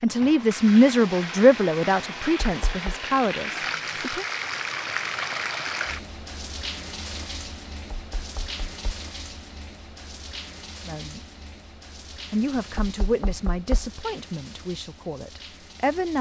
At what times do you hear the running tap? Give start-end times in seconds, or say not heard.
0.0-16.1.